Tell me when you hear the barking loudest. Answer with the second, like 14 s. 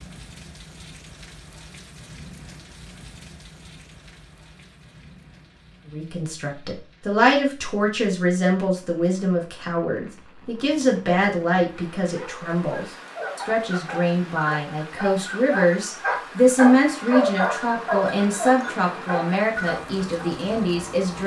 17 s.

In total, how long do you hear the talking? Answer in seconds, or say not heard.
15 s.